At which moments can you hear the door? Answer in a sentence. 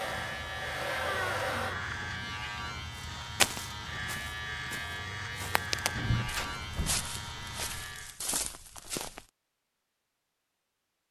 The door can be heard from 0.8 to 2.0 s and from 6.0 to 7.2 s.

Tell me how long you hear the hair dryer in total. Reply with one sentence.
The hair dryer can be heard for 2 seconds in total.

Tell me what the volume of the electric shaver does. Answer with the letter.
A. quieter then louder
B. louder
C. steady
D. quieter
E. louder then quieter
C.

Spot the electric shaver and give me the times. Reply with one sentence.
You can hear the electric shaver from 0.0 to 8.2 s.